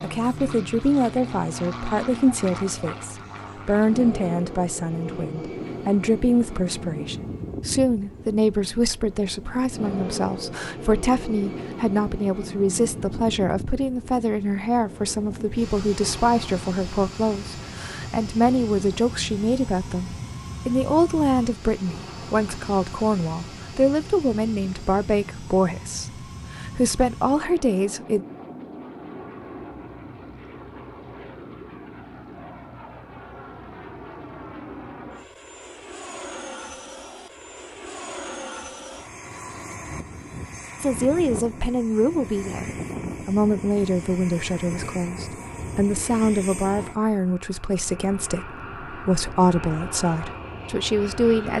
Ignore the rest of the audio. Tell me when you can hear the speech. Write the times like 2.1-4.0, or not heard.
0.0-28.2, 40.8-51.5.